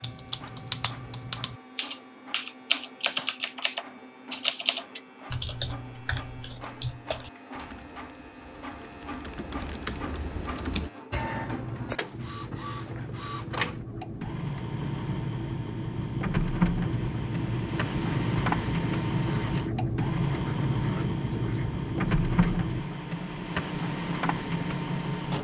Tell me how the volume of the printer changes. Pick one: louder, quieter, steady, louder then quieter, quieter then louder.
louder.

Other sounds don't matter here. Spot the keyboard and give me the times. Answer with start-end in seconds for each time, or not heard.
0.0-10.9.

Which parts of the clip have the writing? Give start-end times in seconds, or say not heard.
11.1-22.9.